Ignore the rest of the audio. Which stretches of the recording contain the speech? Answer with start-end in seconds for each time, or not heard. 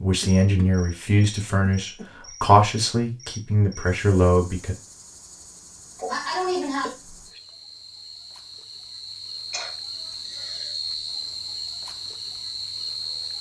0.0-4.8.